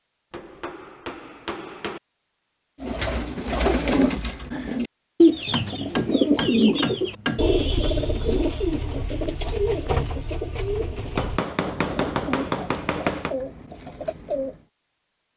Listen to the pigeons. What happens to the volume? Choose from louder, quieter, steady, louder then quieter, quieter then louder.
quieter.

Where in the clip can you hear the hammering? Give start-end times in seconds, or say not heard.
0.3-2.0, 5.5-7.5, 11.2-13.3.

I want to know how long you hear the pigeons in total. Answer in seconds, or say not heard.
12 s.